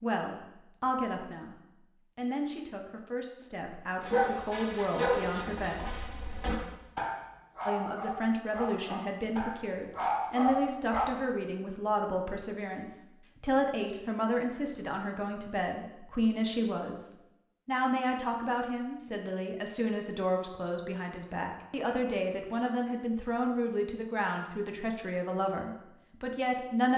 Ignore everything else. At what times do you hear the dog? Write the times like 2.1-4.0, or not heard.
4.0-11.1.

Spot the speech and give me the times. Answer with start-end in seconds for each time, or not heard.
0.0-5.8, 7.7-26.9.